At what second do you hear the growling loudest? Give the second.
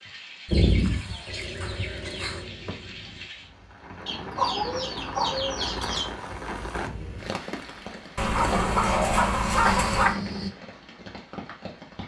9 s.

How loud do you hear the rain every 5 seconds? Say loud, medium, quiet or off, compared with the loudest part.
medium, loud, medium.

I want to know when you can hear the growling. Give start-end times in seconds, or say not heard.
1.2-3.3, 8.5-10.5.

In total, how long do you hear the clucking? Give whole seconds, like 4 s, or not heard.
6 s.